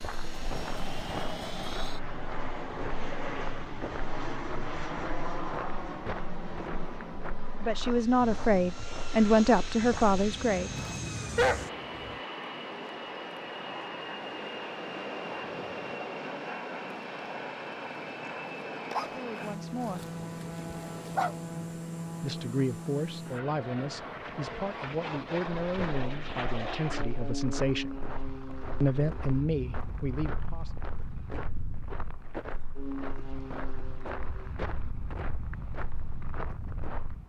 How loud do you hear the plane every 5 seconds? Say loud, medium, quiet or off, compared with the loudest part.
loud, loud, loud, loud, loud, loud, medium, medium.